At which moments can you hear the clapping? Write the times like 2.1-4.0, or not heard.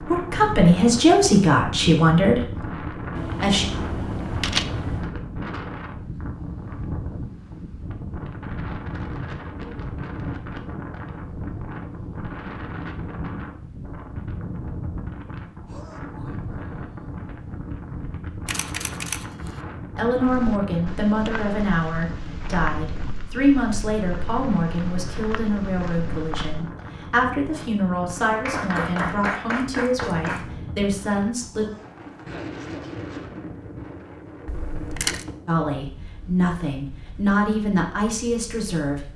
28.4-30.4.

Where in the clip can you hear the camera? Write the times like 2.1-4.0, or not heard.
3.1-5.1, 18.4-19.6, 34.5-35.2.